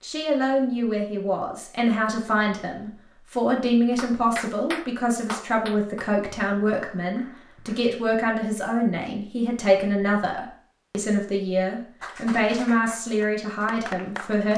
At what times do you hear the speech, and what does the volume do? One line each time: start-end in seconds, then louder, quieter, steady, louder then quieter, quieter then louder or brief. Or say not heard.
0.0-14.5 steady.